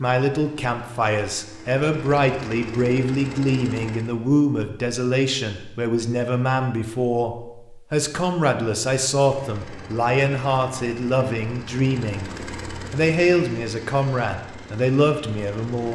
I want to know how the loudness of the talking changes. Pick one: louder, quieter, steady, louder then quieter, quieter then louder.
steady.